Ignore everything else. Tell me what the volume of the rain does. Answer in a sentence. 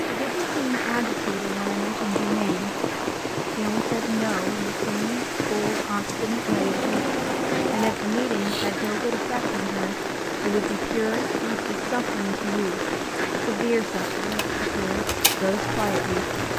The volume of the rain stays about the same.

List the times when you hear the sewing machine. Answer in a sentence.
You can hear the sewing machine from 6.0 to 8.0 s and from 14.2 to 16.5 s.